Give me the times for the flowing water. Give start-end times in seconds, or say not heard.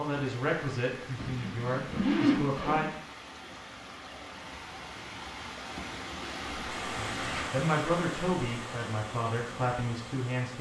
0.0-10.5.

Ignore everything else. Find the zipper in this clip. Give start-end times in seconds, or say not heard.
1.1-3.0, 6.5-7.5.